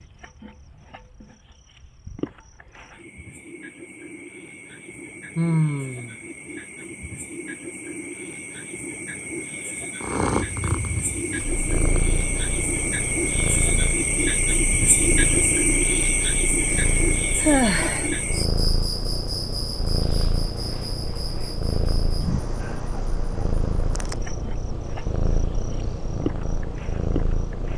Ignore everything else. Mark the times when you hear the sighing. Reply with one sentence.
You can hear the sighing from 5.3 to 6.2 s and from 16.8 to 18.1 s.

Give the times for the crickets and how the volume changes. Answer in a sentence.
You can hear the crickets from 0.0 to 27.7 s, getting louder then quieter.